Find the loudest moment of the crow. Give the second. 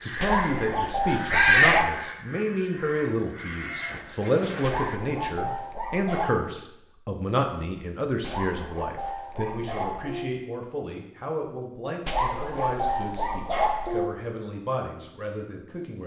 2 s.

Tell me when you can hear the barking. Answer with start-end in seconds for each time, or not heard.
0.2-1.9, 4.6-6.3, 8.2-10.2, 12.1-14.1.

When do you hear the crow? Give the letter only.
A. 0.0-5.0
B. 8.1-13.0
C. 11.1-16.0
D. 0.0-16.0
A.